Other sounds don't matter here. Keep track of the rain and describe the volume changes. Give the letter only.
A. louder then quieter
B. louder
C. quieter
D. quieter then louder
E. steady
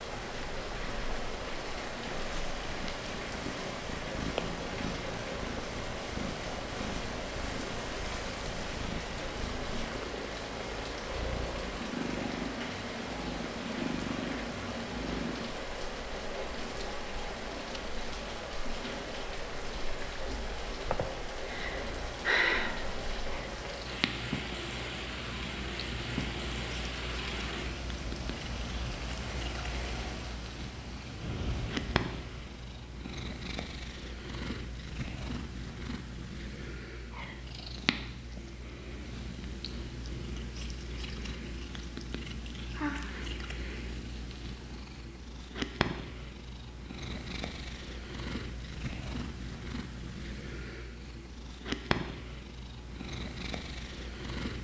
E.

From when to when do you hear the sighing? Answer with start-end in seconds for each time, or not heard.
20.9-22.9, 42.7-43.4.